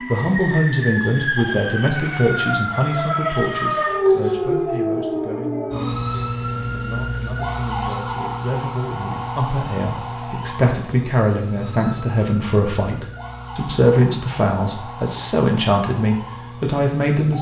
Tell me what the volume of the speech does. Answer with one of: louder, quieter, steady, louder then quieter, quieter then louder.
quieter then louder.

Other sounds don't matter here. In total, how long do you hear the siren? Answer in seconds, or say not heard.
17 s.